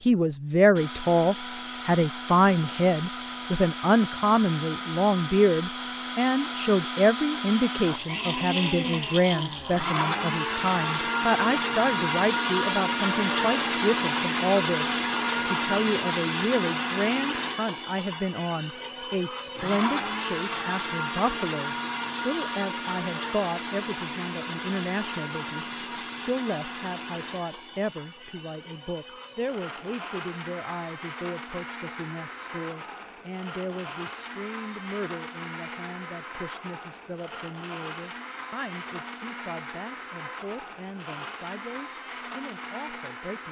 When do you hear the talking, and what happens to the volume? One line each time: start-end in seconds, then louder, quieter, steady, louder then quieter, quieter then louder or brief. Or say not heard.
0.1-43.4 quieter.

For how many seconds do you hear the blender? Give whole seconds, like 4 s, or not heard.
43 s.